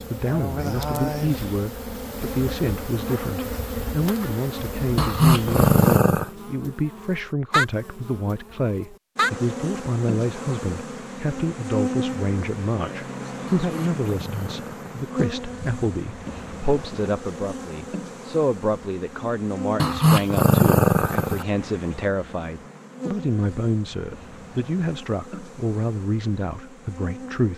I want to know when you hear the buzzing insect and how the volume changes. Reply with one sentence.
You can hear the buzzing insect from 0.0 to 27.5 s, getting quieter.